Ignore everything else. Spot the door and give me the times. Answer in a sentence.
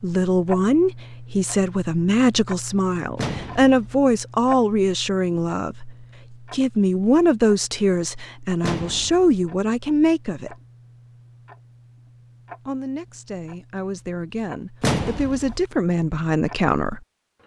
You can hear the door from 3.1 to 4.0 s, from 8.6 to 9.4 s and from 14.8 to 15.6 s.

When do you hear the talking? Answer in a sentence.
You can hear the talking from 0.0 to 10.6 s and from 12.7 to 17.0 s.